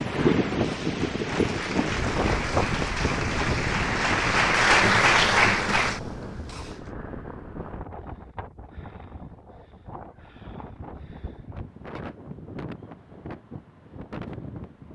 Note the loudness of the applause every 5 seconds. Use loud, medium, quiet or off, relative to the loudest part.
loud, loud, off.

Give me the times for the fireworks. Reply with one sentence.
You can't hear the fireworks here.